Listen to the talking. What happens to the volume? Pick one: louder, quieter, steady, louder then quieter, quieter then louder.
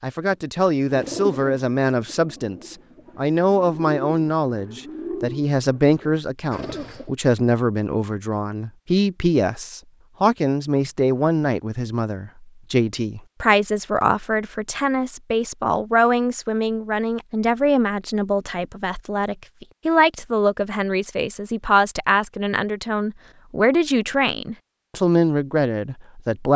steady.